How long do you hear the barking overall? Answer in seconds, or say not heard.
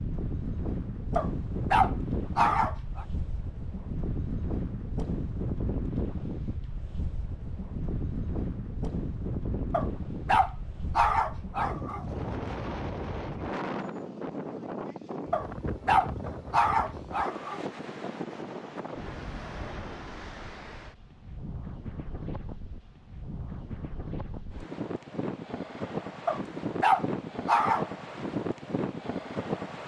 8 s.